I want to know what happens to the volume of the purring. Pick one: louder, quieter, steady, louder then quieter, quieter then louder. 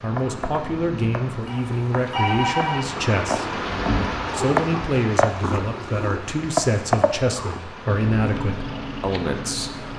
louder then quieter.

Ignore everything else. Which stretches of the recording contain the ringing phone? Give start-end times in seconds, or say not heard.
1.4-2.9.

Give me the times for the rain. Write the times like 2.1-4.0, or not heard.
0.0-9.9.